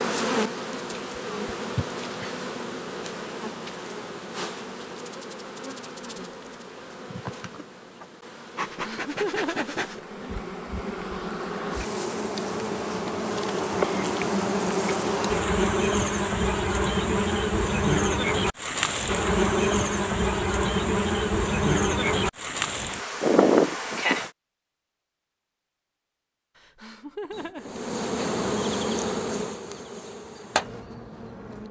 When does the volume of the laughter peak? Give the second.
9 s.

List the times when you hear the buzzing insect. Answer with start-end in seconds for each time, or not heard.
0.0-24.3, 27.3-31.6.